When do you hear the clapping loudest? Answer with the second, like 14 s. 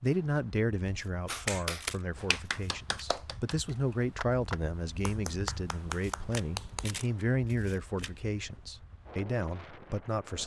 2 s.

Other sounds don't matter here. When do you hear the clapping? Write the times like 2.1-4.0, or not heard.
1.2-7.0.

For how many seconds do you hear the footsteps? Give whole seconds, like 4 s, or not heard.
not heard.